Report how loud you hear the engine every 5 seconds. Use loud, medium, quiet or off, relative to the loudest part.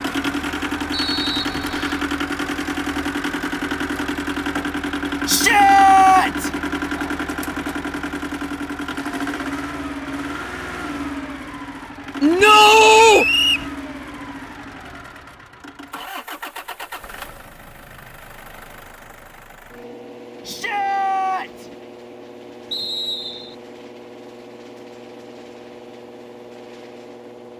loud, loud, medium, quiet, quiet, quiet.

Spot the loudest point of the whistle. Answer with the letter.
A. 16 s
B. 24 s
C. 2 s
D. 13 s
D.